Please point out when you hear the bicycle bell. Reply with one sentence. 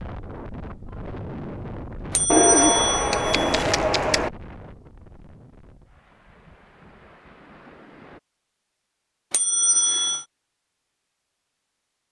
You can hear the bicycle bell from 2.1 to 3.6 s and from 9.3 to 10.2 s.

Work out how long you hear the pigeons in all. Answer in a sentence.
You can hear the pigeons for 2 seconds altogether.